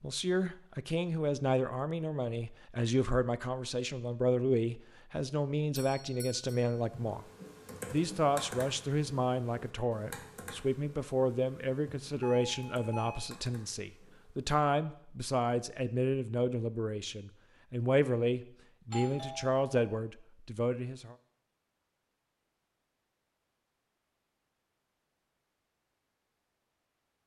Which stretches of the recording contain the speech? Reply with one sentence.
The speech can be heard from 0.0 to 7.2 s and from 7.9 to 21.1 s.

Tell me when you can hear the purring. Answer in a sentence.
The purring can't be heard in this clip.